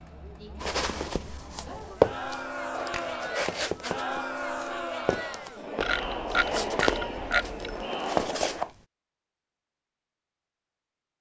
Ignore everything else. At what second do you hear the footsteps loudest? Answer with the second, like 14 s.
2 s.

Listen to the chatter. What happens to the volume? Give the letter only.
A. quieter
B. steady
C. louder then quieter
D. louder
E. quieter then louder
D.